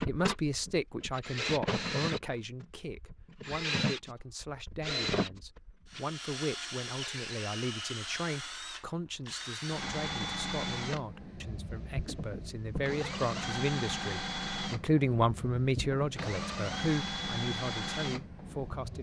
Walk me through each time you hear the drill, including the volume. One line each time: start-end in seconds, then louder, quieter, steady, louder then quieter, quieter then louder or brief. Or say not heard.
0.0-18.9 steady.